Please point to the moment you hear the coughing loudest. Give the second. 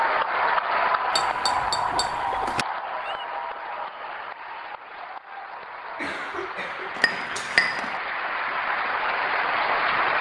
6 s.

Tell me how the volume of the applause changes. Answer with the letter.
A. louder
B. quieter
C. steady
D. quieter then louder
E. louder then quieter
D.